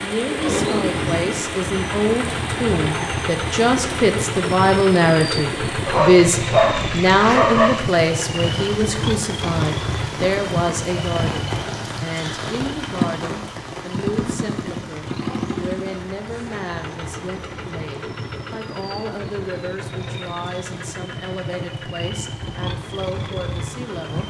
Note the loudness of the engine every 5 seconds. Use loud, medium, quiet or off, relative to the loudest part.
loud, loud, loud, medium, medium.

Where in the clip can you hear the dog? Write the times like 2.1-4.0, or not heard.
5.8-7.7.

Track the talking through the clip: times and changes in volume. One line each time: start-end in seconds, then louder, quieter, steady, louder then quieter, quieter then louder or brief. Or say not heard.
0.0-24.2 quieter.